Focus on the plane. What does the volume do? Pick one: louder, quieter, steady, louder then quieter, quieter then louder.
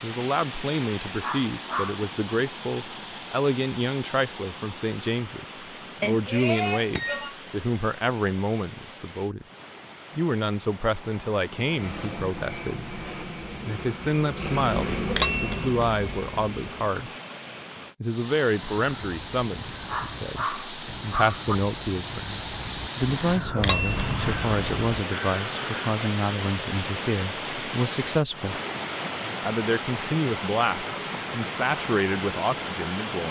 louder then quieter.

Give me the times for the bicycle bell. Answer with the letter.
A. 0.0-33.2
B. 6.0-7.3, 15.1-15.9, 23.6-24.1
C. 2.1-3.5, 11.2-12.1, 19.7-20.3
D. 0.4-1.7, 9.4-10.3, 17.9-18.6
B.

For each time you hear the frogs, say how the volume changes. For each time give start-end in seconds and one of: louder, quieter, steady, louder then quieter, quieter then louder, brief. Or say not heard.
not heard.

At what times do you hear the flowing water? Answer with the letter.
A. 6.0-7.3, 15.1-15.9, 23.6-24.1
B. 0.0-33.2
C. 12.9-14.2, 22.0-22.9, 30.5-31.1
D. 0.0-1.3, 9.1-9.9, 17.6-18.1
B.